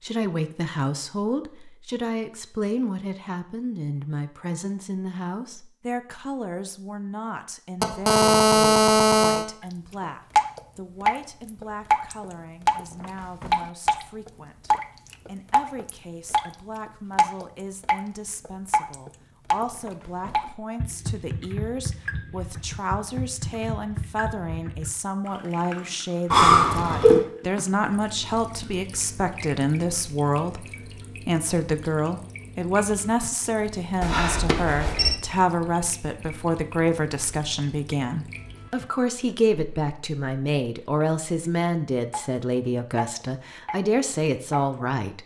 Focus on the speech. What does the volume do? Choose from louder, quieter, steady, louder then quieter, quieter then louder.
quieter then louder.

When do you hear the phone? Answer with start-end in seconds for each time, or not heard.
7.8-9.4, 26.3-27.2, 34.0-35.2.